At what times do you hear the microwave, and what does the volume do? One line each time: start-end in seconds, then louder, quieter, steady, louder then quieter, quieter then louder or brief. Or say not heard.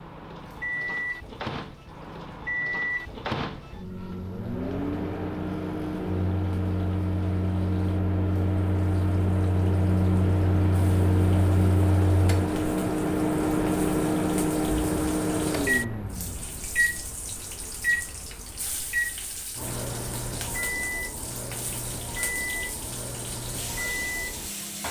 0.0-24.8 louder then quieter.